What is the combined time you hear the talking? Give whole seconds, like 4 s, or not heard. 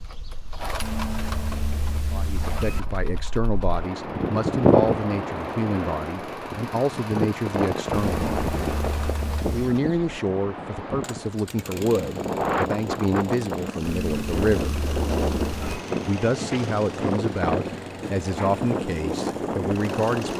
16 s.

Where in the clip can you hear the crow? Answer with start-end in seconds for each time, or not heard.
not heard.